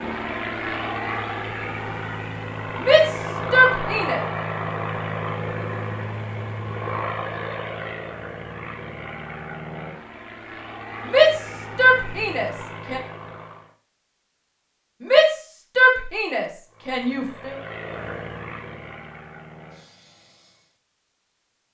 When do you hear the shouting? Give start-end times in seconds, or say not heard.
2.8-4.2, 11.1-13.0, 15.0-17.6.